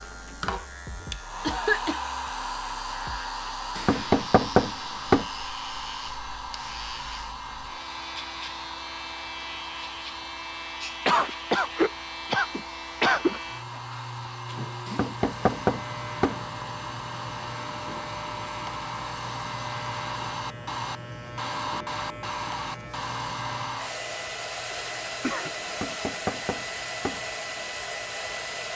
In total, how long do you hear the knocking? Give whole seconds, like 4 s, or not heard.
5 s.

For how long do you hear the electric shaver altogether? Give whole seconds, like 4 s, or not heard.
29 s.